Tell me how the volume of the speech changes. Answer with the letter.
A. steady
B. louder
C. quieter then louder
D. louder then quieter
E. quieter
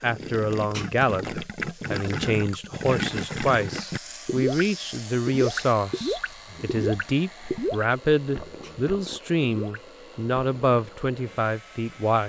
A.